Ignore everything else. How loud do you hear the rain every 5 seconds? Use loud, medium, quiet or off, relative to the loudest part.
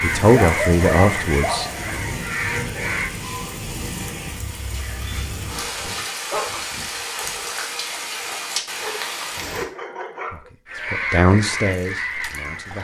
loud, loud, off.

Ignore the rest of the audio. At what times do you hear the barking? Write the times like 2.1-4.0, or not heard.
0.4-1.9, 5.5-6.6, 8.8-10.5.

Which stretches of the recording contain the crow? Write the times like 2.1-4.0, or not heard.
0.0-3.1, 10.7-12.7.